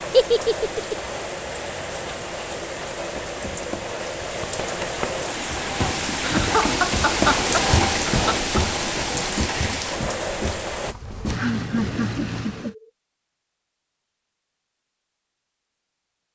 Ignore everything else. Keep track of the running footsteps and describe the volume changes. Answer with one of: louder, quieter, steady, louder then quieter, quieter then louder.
louder then quieter.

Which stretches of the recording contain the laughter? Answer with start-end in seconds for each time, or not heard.
0.1-0.9, 6.2-8.6, 11.0-12.8.